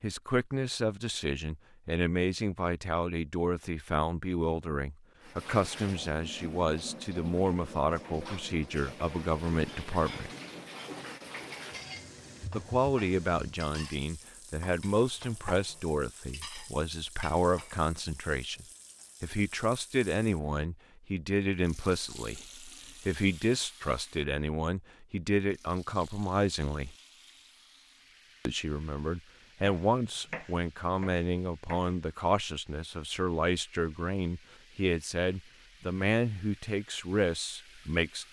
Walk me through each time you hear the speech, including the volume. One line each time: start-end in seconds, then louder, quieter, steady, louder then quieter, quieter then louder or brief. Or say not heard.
0.0-10.3 steady
12.5-26.9 steady
28.4-38.2 steady.